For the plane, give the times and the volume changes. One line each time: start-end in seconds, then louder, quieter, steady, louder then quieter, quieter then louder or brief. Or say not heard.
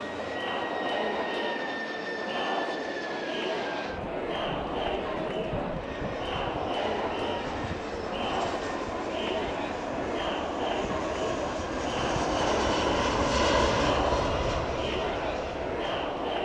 0.0-16.4 louder.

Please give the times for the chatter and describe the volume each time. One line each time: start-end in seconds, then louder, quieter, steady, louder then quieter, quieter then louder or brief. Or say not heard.
0.0-16.4 steady.